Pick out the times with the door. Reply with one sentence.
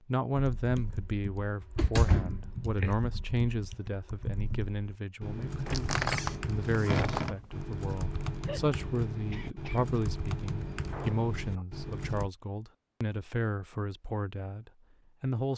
You can hear the door from 1.6 to 3.0 s, from 5.7 to 7.5 s and from 10.7 to 11.7 s.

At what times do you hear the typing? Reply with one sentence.
The typing can be heard from 0.3 to 12.3 s.